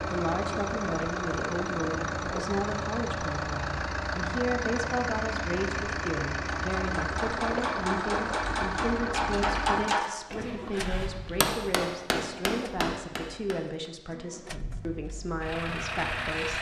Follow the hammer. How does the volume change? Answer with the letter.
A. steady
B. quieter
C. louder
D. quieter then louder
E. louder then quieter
A.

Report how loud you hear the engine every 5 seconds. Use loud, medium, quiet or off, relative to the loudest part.
loud, loud, medium, loud.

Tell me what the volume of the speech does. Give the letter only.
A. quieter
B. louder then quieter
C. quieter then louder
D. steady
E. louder
D.